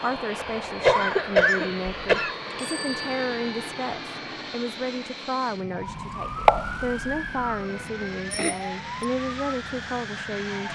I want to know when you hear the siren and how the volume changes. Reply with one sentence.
The siren can be heard from 5.7 to 10.7 s, getting quieter.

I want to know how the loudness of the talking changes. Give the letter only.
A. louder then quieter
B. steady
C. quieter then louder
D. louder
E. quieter
B.